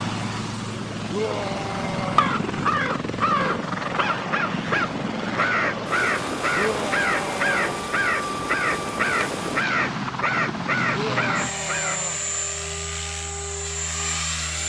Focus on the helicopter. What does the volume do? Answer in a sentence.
The volume of the helicopter stays about the same.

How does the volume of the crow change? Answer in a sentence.
The volume of the crow stays about the same.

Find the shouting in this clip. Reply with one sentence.
The shouting can be heard from 1.1 to 2.4 s, from 6.5 to 7.8 s and from 10.9 to 12.2 s.